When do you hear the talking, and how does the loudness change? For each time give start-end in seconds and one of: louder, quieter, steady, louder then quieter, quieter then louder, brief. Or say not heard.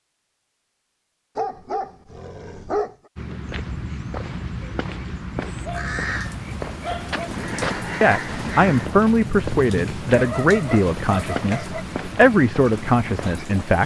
7.4-13.8 steady.